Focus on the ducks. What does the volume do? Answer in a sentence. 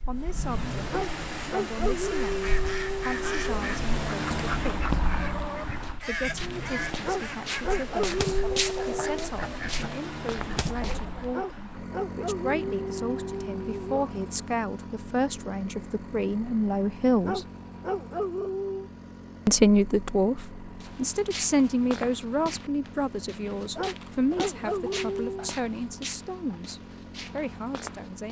The volume of the ducks stays about the same.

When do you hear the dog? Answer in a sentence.
You can hear the dog from 0.9 to 3.8 s, from 7.0 to 9.2 s, from 11.3 to 14.2 s, from 17.2 to 18.9 s and from 23.8 to 25.6 s.